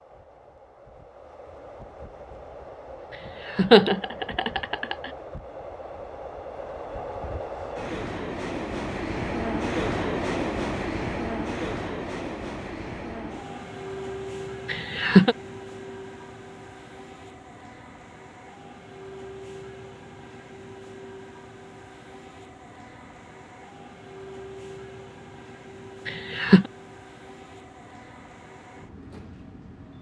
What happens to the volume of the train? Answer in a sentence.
The loudness of the train goes up, then down.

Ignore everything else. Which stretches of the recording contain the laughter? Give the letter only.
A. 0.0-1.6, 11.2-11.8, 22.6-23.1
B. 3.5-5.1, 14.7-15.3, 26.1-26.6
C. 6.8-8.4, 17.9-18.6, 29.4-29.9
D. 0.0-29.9
B.